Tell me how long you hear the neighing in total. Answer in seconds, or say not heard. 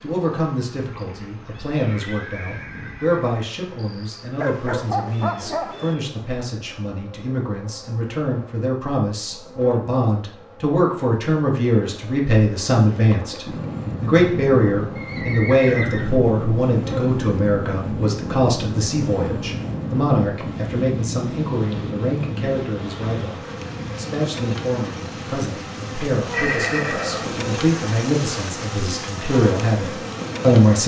5 s.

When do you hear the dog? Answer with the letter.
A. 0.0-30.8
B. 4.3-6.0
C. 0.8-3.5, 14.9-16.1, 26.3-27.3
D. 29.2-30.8
B.